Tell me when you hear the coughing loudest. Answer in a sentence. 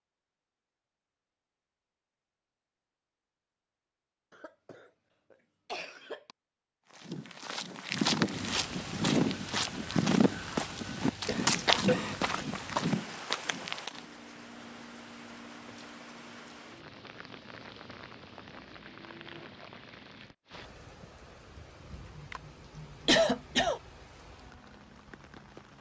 The volume of the coughing peaks at 23 seconds.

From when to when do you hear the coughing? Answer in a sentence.
The coughing can be heard from 4.3 to 6.3 s, from 11.2 to 12.3 s and from 22.1 to 23.8 s.